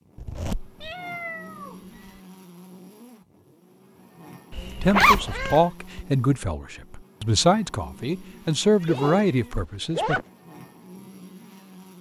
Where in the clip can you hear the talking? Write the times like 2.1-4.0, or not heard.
4.8-10.2.